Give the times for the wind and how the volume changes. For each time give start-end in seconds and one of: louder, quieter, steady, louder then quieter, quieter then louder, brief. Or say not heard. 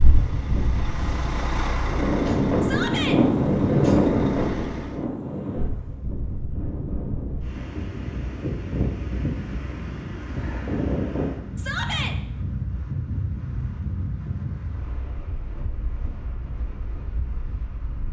0.0-18.0 quieter.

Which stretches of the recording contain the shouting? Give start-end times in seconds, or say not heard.
2.6-3.2, 11.6-12.2.